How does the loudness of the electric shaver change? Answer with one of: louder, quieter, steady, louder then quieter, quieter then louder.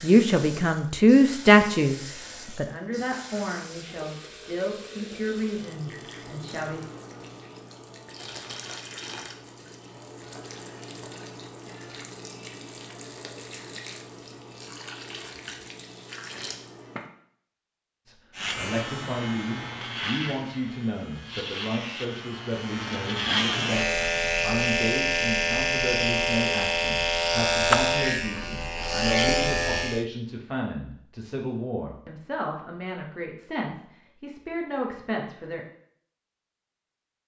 louder.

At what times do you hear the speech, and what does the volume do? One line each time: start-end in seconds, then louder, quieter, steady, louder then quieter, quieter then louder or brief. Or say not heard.
0.0-6.8 quieter
18.1-35.6 steady.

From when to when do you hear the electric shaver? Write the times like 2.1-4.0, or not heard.
18.4-30.1.